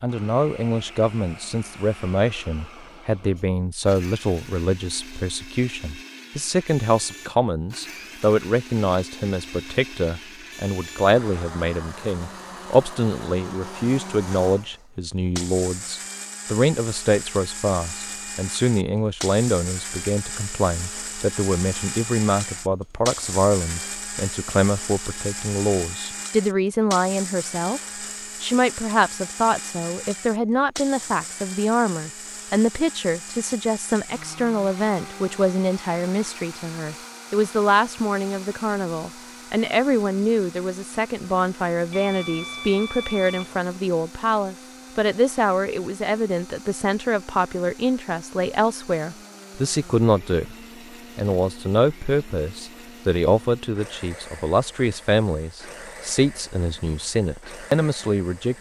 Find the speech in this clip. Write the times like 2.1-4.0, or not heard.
0.0-50.5, 51.1-58.5.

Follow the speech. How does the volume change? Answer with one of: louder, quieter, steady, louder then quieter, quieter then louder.
steady.